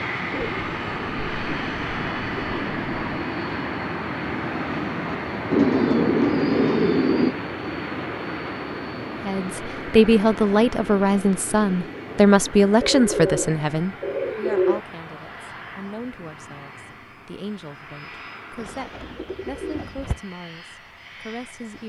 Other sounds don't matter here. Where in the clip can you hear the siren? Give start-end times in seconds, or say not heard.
not heard.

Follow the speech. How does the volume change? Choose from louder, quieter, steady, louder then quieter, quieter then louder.
quieter.